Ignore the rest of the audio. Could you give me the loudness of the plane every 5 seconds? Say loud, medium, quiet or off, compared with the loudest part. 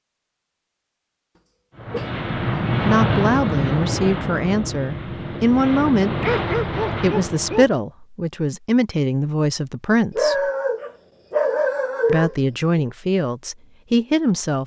loud, loud, off.